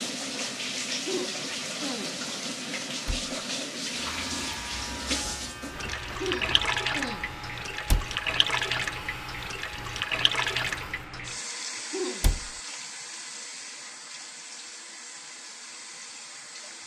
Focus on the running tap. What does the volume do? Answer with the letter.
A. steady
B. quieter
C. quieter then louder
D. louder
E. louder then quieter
B.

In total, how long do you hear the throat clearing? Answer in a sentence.
The throat clearing can be heard for 3 seconds in total.